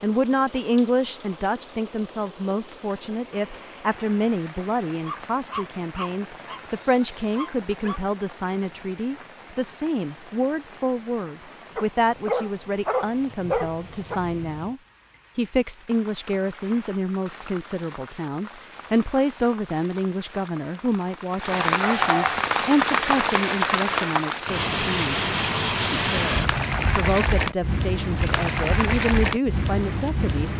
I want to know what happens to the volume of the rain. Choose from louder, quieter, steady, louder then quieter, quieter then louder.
louder.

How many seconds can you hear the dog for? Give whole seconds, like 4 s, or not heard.
6 s.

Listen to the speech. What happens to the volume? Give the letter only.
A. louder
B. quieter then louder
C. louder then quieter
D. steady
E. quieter
D.